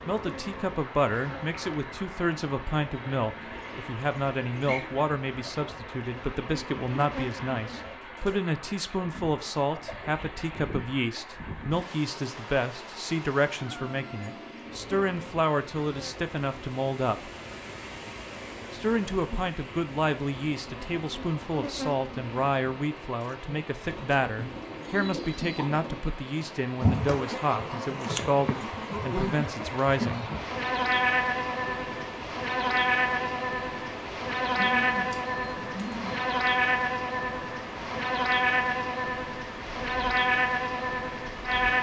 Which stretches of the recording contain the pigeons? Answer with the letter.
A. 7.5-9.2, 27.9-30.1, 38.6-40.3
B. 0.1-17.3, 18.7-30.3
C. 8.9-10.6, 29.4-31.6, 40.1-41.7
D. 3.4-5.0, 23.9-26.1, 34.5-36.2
D.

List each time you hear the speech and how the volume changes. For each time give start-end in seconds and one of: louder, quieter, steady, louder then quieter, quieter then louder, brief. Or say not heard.
0.1-17.3 steady
18.7-30.3 steady.